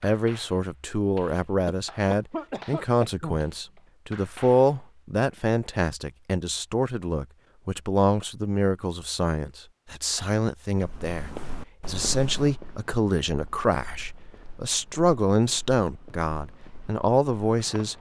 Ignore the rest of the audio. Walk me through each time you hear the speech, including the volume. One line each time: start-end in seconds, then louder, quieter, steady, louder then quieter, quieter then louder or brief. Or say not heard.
0.0-17.9 steady.